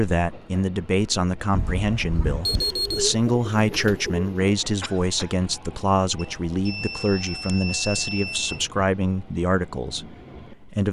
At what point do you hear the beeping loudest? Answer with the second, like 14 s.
3 s.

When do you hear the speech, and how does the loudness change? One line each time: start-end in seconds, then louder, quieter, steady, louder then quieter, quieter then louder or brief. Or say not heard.
0.0-10.8 steady.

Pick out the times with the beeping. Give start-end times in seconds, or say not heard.
1.5-3.0, 6.2-8.7.